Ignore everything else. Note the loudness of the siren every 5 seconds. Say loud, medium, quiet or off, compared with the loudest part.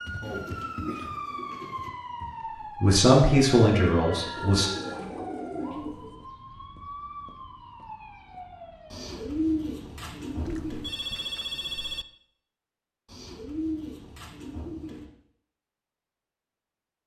loud, medium, off, off.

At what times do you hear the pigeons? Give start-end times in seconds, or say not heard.
0.2-1.9, 4.3-6.2, 8.9-10.9, 13.1-15.1.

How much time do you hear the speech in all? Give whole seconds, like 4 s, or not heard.
2 s.